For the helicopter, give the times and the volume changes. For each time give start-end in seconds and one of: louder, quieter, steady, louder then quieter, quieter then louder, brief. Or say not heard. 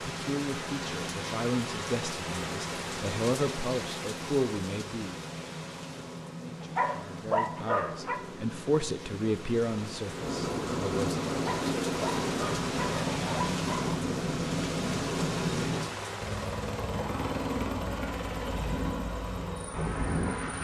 0.0-20.5 louder.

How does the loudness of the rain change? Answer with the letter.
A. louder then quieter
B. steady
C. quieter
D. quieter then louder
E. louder
D.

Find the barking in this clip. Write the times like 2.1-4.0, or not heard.
6.6-8.2, 11.3-14.0.